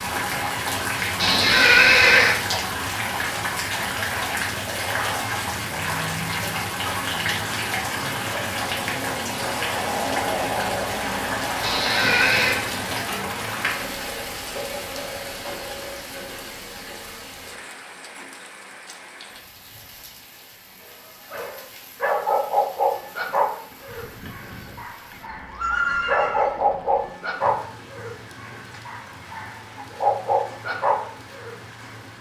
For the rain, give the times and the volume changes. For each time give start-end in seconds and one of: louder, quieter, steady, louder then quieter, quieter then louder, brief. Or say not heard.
0.0-32.1 quieter.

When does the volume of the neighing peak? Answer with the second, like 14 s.
2 s.